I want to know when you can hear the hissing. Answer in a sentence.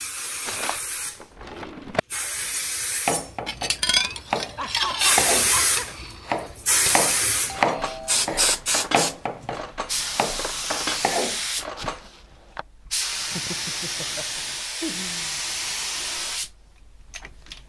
The hissing can be heard from 0.0 to 17.6 s.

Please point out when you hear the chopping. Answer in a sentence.
The chopping can be heard from 3.0 to 12.7 s.